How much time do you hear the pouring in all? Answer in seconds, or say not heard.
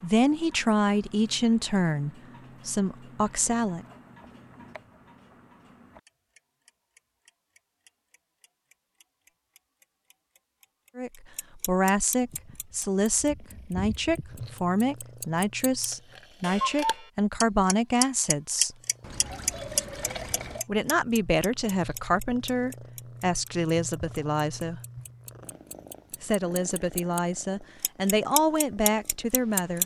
2 s.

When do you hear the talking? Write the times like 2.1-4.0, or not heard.
0.0-3.9, 10.9-18.8, 20.6-24.8, 26.2-29.8.